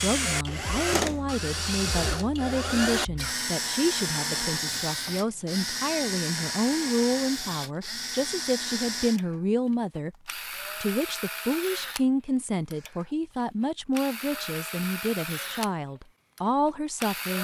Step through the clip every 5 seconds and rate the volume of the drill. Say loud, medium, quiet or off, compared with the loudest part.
loud, loud, medium, medium.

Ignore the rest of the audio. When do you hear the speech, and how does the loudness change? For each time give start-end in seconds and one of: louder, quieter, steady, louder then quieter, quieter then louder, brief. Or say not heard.
0.0-17.4 steady.